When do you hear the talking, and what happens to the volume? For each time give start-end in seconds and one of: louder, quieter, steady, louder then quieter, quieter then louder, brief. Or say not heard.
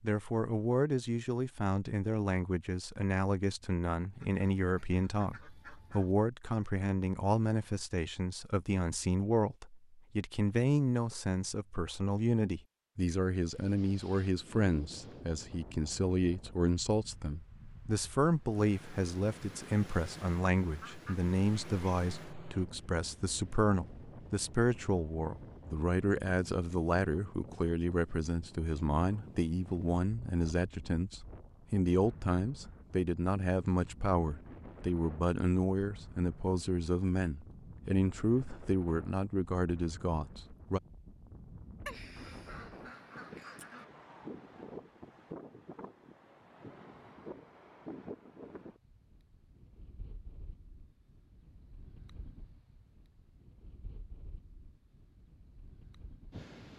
0.0-40.8 steady.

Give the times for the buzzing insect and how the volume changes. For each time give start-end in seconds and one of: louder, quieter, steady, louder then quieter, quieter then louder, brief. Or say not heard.
not heard.